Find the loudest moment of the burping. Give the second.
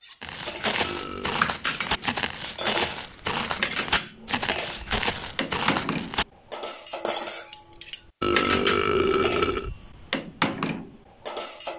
9 s.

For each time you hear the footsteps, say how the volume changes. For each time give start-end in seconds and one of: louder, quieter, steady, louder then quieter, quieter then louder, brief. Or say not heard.
0.2-6.2 steady.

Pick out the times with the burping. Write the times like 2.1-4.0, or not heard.
0.8-1.4, 8.2-9.7.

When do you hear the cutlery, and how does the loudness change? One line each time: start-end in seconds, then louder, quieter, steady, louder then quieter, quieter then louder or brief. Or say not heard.
0.0-11.7 steady.